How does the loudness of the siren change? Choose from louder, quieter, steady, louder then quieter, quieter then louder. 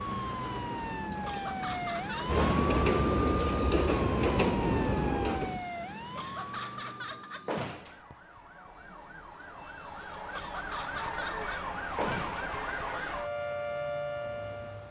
quieter then louder.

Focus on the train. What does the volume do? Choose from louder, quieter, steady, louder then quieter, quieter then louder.
louder.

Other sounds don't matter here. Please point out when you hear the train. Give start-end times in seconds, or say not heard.
0.1-5.7.